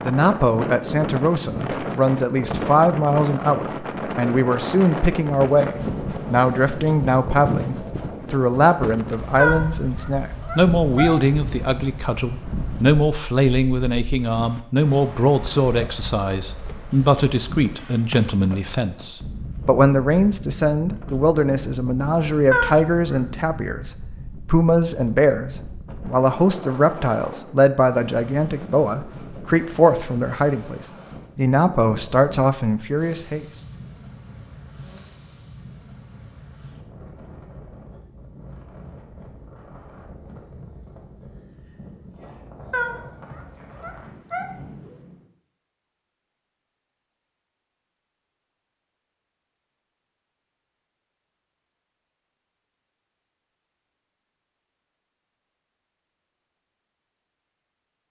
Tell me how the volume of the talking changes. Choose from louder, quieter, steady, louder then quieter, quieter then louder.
steady.